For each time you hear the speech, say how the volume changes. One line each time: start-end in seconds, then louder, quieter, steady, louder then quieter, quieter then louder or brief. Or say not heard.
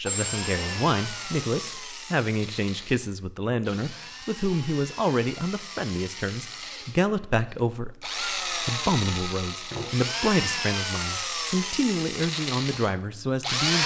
0.0-13.8 steady.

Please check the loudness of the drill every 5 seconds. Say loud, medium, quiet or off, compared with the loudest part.
medium, medium, loud.